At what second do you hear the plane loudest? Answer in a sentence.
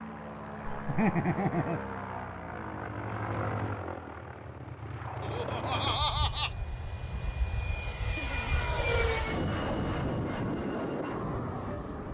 The volume of the plane peaks at 9 seconds.